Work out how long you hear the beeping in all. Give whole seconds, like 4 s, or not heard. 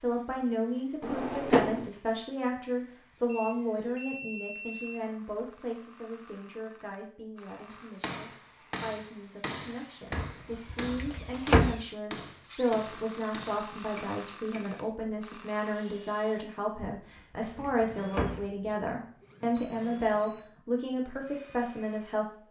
3 s.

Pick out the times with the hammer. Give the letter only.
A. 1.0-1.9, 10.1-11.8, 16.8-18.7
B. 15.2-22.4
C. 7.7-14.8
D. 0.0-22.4
C.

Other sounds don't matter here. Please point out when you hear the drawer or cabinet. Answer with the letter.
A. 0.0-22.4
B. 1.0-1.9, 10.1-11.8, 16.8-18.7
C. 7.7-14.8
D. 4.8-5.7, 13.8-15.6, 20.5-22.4
B.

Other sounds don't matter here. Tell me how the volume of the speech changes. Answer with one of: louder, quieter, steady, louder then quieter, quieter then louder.
quieter then louder.